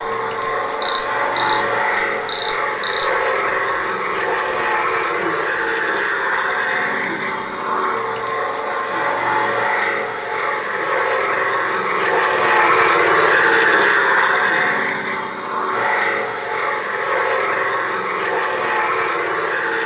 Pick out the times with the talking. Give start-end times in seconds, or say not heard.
not heard.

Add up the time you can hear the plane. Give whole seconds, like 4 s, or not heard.
20 s.